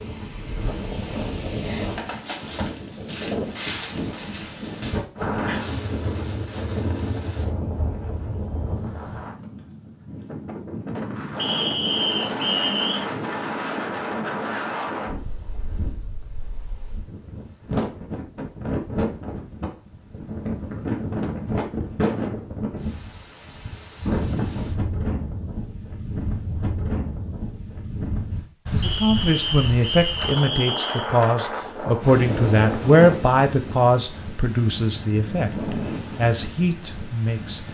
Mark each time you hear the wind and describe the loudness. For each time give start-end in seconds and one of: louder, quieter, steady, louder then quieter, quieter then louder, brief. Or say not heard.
0.0-37.6 steady.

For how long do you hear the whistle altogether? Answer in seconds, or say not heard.
4 s.